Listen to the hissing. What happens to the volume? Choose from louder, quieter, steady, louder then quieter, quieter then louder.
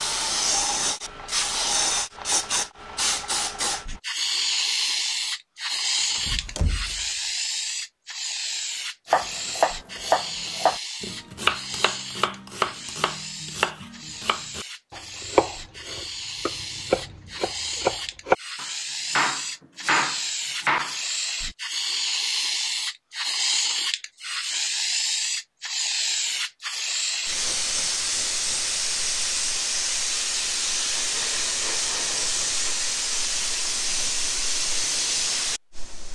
quieter then louder.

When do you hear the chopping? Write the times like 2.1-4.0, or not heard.
9.1-20.9.